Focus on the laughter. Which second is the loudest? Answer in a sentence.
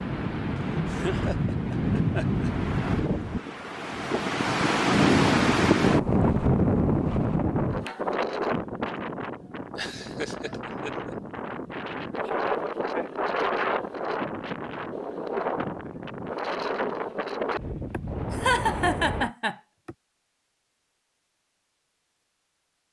The volume of the laughter peaks at 19 seconds.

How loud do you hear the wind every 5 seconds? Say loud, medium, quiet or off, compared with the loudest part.
loud, loud, medium, medium, off.